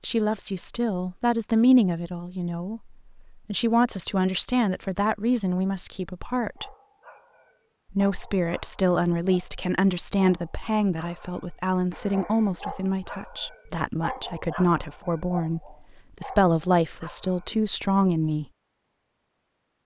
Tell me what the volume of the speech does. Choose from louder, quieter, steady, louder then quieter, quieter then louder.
steady.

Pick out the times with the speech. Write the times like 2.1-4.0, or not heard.
0.0-6.7, 7.9-18.4.